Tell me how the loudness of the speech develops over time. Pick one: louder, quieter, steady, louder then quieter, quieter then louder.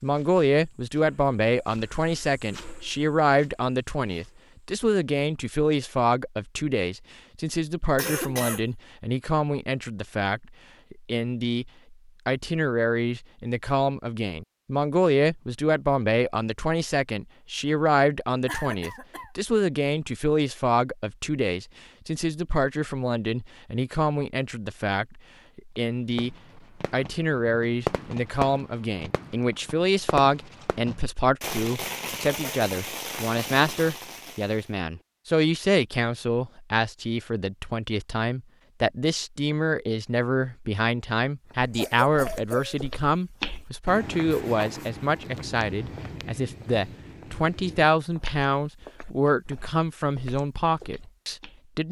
steady.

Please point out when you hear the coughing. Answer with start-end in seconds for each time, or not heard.
8.0-8.6, 18.4-19.3, 41.7-42.8.